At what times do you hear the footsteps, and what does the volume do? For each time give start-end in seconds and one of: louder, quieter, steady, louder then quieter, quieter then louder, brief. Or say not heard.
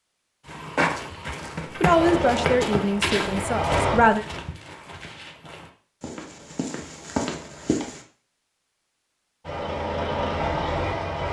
0.5-8.0 quieter then louder.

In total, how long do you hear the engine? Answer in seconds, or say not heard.
4 s.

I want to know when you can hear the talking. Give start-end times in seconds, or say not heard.
1.8-4.2.